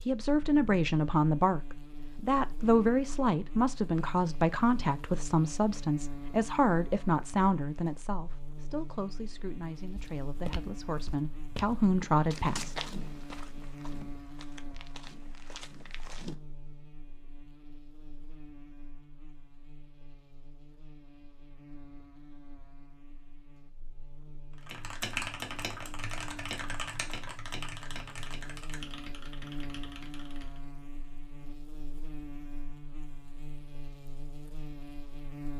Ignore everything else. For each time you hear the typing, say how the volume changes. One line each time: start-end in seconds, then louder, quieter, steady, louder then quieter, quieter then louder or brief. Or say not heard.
24.6-30.6 quieter.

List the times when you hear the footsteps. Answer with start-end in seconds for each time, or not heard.
9.9-16.4.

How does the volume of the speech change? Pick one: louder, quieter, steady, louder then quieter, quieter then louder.
quieter then louder.